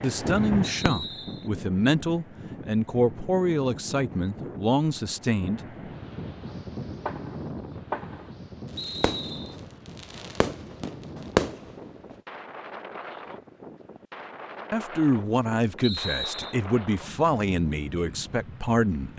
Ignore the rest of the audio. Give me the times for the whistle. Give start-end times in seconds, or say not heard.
0.6-1.5, 8.8-9.6, 15.8-16.6.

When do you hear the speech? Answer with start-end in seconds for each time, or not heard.
0.0-6.0, 14.7-19.1.